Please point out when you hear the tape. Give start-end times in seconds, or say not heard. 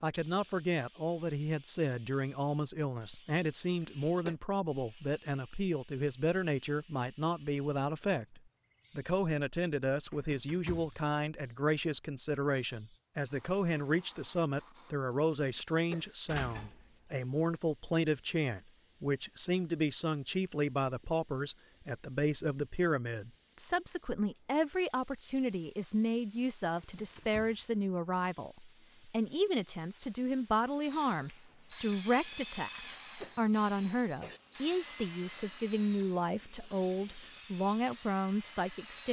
not heard.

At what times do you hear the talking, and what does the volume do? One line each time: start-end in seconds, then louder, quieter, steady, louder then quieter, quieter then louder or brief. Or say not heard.
0.0-39.0 steady.